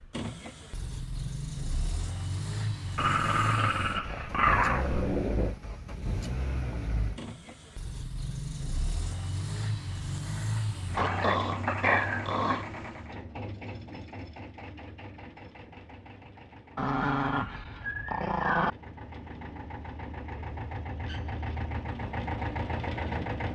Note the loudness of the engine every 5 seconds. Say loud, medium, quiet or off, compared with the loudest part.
loud, loud, loud, medium, loud.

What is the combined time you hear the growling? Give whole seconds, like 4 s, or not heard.
6 s.